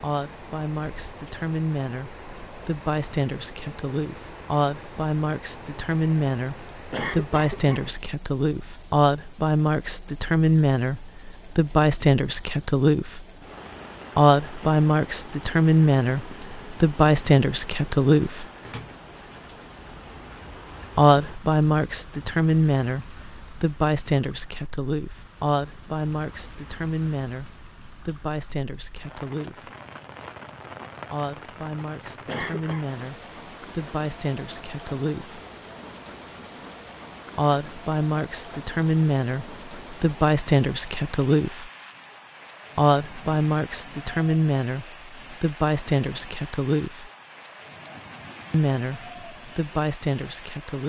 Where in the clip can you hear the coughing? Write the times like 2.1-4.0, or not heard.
6.9-7.8, 32.2-32.9.